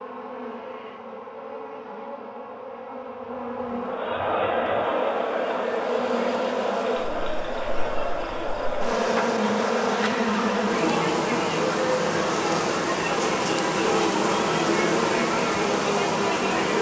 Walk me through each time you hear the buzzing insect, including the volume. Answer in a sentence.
The buzzing insect can be heard from 0.0 to 16.7 s, getting louder.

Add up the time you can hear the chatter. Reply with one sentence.
You can hear the chatter for 13 seconds altogether.